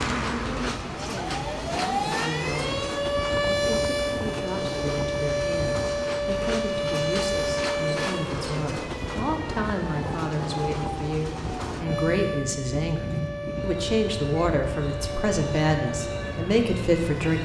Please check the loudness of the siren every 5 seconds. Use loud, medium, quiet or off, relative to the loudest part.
loud, loud, medium, medium.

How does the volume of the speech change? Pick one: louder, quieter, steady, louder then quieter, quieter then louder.
louder.